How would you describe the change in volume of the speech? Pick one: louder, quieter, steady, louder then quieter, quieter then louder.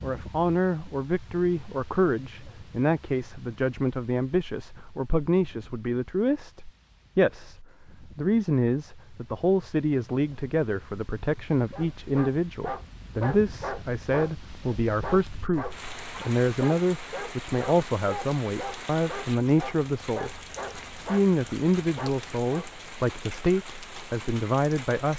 steady.